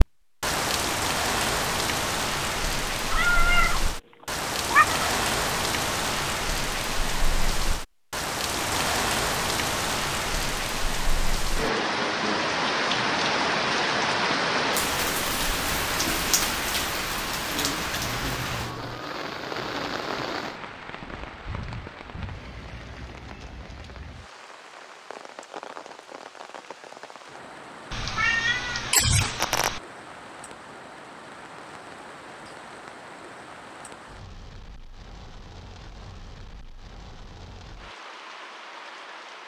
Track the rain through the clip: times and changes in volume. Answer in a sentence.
The rain can be heard from 0.0 to 39.4 s, getting quieter.